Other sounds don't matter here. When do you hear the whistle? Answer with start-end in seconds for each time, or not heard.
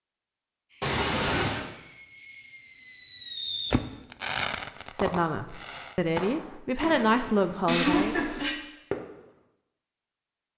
not heard.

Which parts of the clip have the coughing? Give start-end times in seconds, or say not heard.
0.8-1.6, 7.7-8.6.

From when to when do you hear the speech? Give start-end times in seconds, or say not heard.
5.0-8.2.